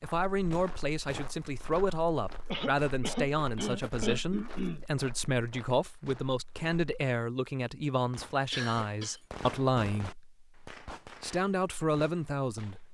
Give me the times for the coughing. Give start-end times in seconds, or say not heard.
2.5-4.8, 8.5-9.2.